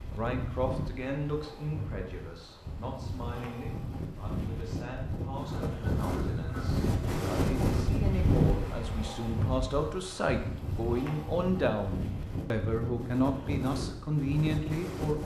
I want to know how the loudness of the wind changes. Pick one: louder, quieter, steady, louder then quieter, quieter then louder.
louder then quieter.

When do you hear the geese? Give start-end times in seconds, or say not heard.
5.4-6.9.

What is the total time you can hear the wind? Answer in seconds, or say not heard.
15 s.